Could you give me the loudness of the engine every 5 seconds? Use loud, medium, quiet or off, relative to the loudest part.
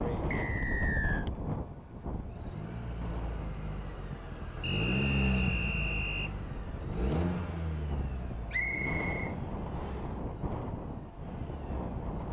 loud, loud, quiet.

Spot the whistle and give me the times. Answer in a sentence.
You can hear the whistle from 0.3 to 1.2 s, from 4.6 to 6.3 s and from 8.5 to 10.0 s.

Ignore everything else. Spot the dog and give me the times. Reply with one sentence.
The dog can't be heard in this clip.